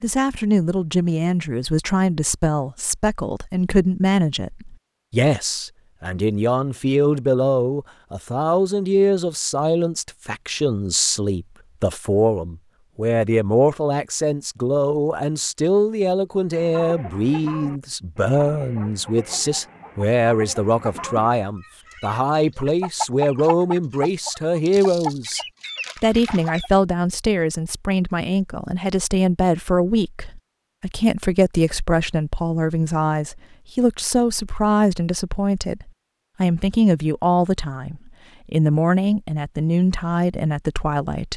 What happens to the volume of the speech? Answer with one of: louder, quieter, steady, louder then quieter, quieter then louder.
steady.